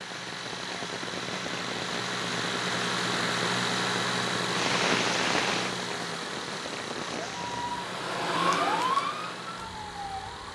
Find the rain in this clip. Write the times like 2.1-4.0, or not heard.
0.0-7.8.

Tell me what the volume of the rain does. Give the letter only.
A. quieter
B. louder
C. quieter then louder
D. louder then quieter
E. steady
D.